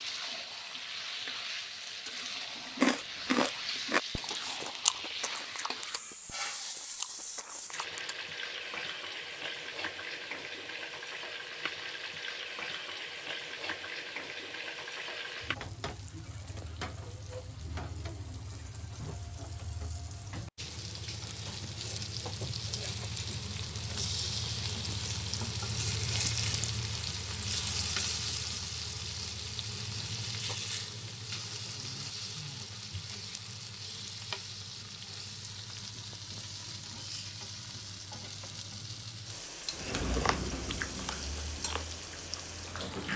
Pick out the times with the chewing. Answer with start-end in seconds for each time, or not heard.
2.8-8.2, 39.7-42.9.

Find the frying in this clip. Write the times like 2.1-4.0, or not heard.
0.0-43.1.